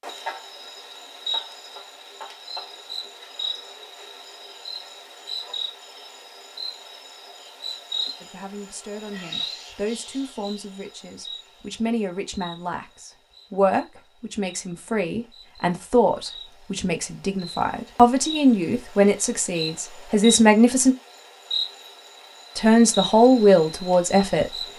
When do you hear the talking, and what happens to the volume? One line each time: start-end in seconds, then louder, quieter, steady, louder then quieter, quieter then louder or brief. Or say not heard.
8.2-20.9 louder
22.6-24.5 brief.